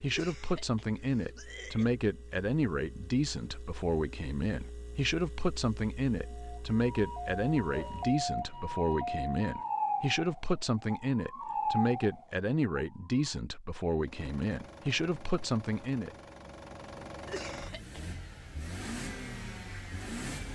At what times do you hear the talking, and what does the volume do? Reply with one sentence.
The talking can be heard from 0.0 to 16.1 s, at a steady volume.